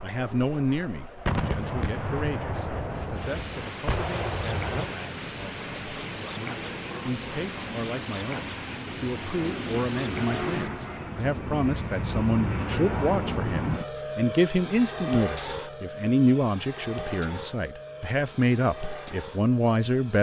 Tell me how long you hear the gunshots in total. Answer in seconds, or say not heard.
4 s.